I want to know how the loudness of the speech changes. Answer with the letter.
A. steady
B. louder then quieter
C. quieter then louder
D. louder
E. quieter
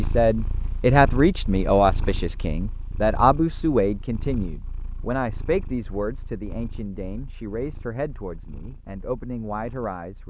E.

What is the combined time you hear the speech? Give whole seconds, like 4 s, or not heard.
10 s.